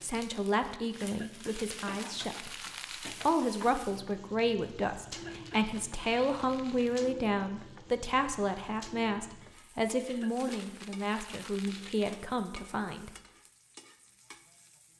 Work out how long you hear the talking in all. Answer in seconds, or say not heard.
13 s.